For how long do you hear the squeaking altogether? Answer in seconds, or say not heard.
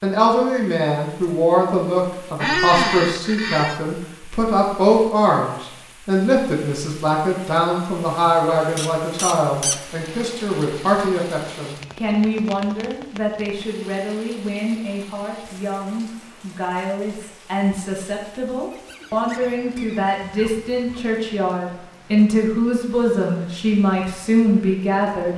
5 s.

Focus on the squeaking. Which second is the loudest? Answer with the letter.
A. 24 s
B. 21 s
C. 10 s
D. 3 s
D.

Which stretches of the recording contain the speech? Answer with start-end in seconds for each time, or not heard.
0.0-25.3.